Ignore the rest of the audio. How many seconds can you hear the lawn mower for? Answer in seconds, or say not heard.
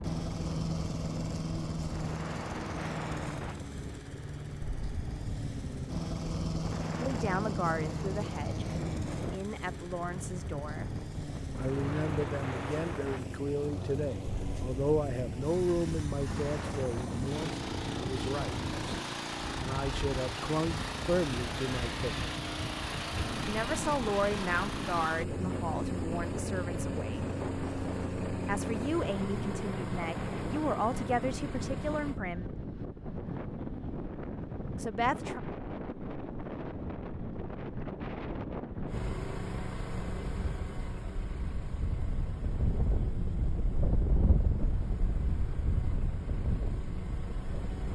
41 s.